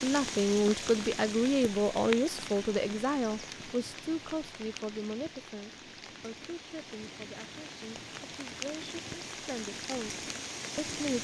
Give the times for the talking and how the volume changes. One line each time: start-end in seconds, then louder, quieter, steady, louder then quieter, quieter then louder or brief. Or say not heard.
0.0-11.1 quieter then louder.